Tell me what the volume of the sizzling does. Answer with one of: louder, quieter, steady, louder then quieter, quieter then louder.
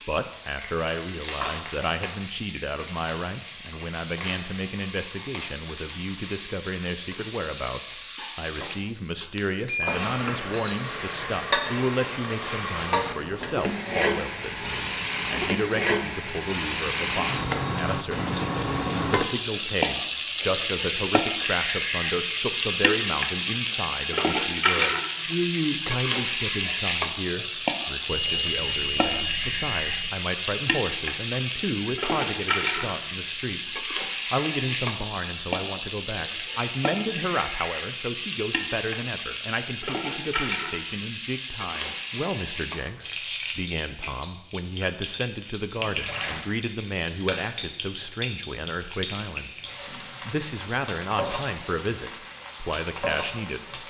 louder then quieter.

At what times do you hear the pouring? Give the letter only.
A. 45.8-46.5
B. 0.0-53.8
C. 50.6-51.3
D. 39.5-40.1
A.